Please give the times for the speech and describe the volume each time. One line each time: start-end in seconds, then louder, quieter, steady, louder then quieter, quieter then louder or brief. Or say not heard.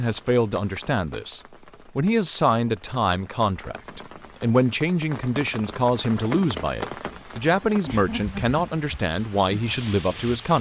0.0-10.5 steady.